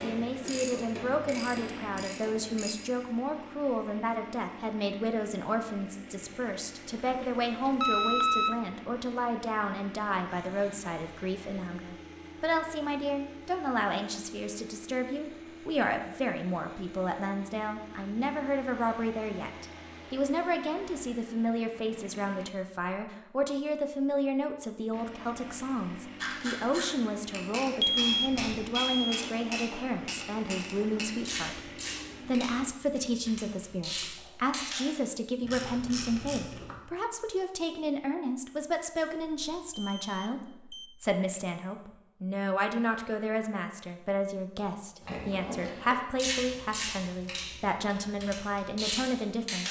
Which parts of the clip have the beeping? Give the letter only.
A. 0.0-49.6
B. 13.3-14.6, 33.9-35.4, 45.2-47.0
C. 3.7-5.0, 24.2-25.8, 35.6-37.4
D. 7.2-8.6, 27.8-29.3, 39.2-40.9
D.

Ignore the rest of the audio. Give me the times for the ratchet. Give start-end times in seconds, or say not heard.
0.0-2.8, 26.1-36.8, 45.0-49.6.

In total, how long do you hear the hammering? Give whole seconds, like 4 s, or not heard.
not heard.